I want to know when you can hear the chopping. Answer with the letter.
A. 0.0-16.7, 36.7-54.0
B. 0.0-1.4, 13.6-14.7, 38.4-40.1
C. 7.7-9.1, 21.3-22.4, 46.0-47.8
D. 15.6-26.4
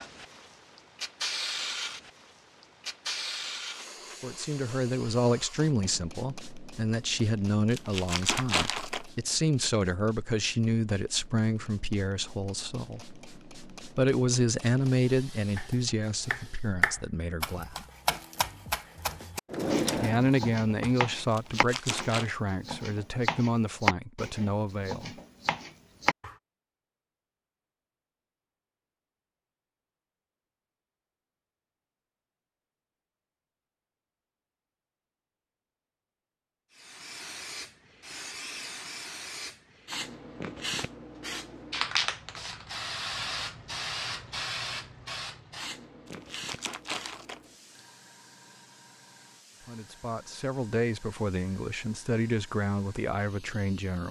D.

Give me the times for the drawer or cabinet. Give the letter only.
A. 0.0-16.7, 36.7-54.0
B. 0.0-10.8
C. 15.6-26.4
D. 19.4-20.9
D.